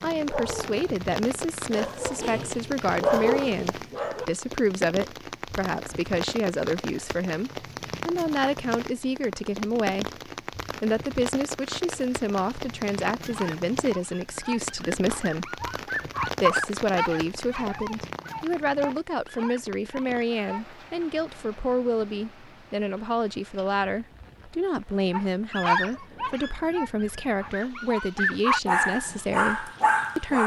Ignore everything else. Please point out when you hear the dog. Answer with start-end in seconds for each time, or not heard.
0.0-4.3, 13.2-20.6, 25.1-30.4.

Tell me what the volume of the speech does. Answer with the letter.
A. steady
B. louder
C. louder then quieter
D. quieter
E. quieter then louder
A.